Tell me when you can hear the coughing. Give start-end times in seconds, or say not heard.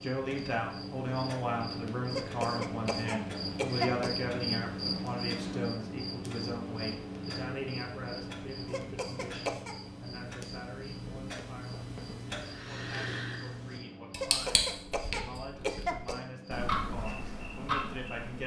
2.1-4.1, 8.7-9.8, 14.2-16.1.